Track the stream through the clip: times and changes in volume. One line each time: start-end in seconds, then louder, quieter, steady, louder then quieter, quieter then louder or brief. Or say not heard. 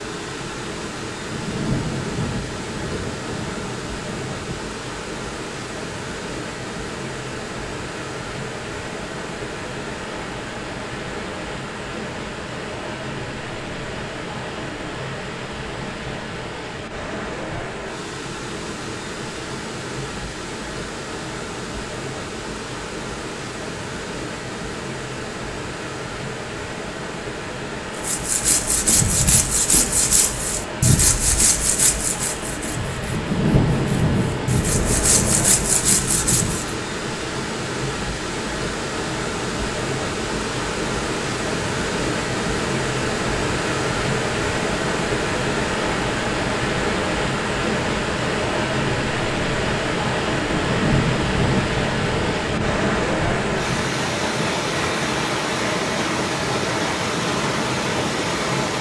0.0-58.7 louder.